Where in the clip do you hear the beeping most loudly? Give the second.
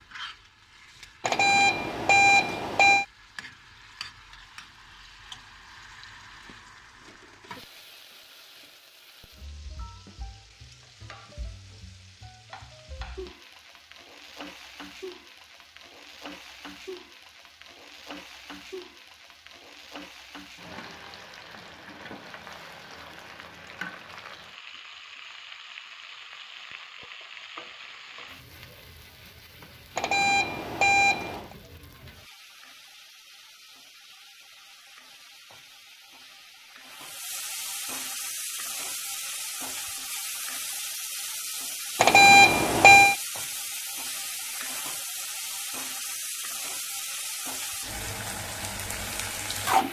42 s.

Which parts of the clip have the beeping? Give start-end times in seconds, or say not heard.
1.2-3.0, 29.9-31.5, 42.0-43.1.